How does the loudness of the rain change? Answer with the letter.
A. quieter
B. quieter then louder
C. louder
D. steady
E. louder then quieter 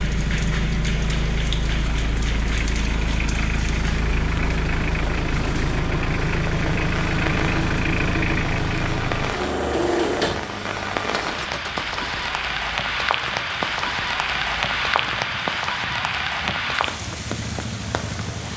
C.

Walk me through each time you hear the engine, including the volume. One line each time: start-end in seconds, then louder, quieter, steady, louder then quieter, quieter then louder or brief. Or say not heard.
0.0-18.5 quieter.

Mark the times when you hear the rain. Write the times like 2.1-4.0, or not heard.
0.0-18.5.